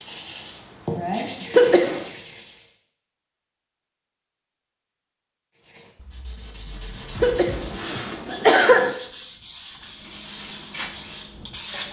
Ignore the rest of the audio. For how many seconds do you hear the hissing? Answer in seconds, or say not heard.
2 s.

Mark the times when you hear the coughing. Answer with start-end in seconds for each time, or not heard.
1.5-2.0, 7.2-8.9.